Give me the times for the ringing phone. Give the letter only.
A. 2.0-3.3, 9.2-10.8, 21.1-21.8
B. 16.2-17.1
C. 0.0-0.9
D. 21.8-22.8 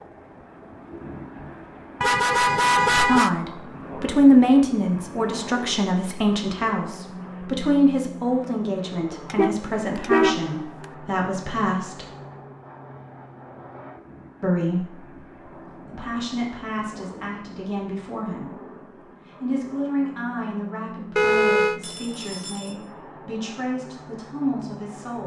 D.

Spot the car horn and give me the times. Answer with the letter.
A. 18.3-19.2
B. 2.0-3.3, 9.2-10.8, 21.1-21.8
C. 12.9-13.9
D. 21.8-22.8
B.